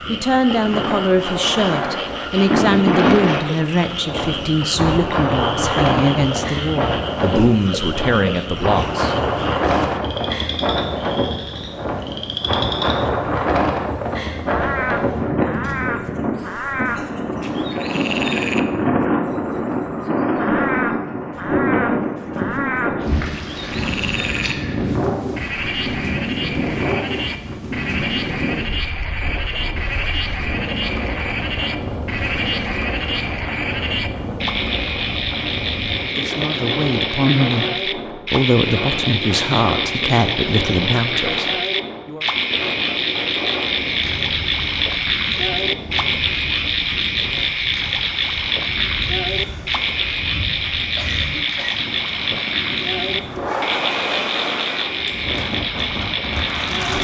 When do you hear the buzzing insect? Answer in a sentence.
The buzzing insect can't be heard in this clip.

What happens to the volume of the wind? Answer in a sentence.
The volume of the wind goes down.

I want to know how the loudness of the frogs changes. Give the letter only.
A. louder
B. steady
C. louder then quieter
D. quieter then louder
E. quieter
A.